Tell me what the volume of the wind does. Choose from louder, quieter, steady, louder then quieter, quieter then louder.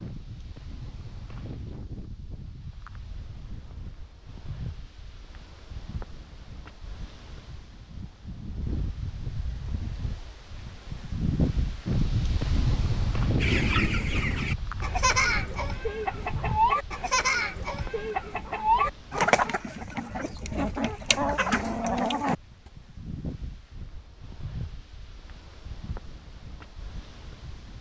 louder then quieter.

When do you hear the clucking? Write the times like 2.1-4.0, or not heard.
13.4-22.4.